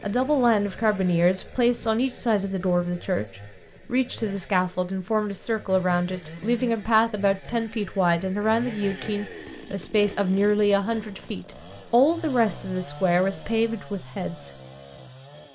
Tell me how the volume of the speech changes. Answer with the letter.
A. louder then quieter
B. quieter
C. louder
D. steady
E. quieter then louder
D.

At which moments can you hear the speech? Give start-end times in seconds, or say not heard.
0.0-14.5.